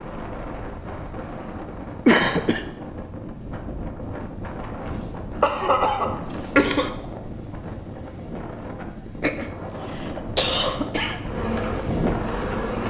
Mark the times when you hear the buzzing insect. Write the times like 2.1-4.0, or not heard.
11.2-12.8.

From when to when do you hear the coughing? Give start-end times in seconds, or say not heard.
2.0-2.6, 4.9-6.9, 9.2-11.2.